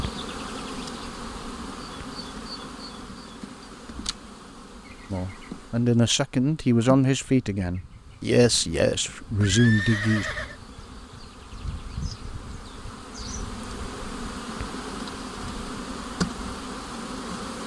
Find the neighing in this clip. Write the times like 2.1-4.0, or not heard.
9.3-10.6.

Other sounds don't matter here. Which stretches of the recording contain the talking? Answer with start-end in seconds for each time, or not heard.
5.1-10.2.